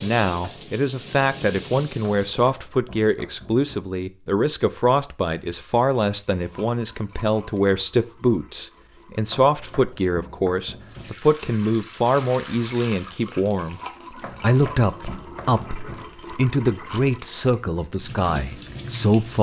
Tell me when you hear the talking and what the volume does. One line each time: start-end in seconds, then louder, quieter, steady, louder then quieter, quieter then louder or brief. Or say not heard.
0.0-19.3 steady.